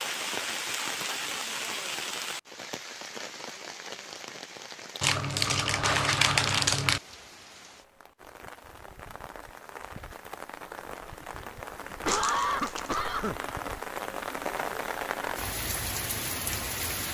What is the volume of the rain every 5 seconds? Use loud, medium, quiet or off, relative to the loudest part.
loud, quiet, loud, loud.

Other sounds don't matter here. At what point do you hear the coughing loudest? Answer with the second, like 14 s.
12 s.